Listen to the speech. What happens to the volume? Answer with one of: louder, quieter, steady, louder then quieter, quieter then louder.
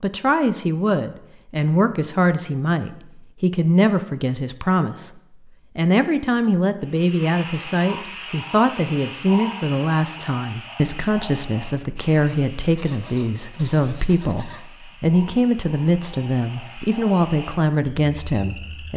steady.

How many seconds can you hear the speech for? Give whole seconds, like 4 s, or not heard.
19 s.